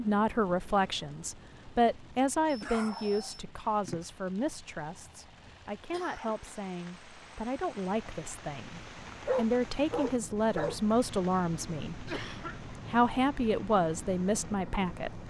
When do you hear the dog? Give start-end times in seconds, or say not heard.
2.1-4.0, 9.2-10.8.